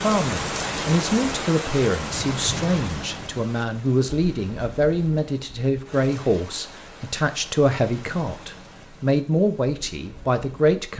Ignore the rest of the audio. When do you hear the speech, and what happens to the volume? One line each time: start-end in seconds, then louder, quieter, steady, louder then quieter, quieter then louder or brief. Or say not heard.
0.0-10.9 steady.